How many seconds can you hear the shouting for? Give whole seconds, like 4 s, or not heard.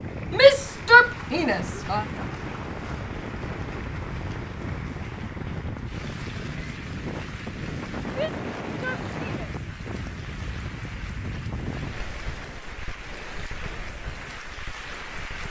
3 s.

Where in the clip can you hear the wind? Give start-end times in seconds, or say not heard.
0.0-15.4.